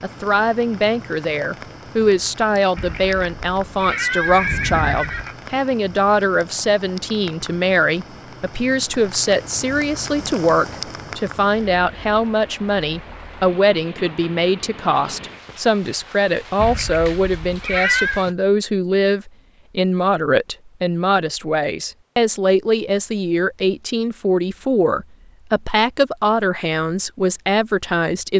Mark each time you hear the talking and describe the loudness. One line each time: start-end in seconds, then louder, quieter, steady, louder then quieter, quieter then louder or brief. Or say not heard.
0.0-28.3 steady.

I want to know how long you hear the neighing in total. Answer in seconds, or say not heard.
4 s.